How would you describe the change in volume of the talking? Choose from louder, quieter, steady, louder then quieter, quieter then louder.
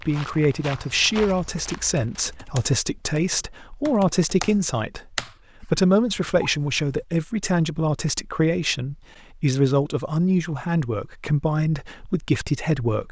steady.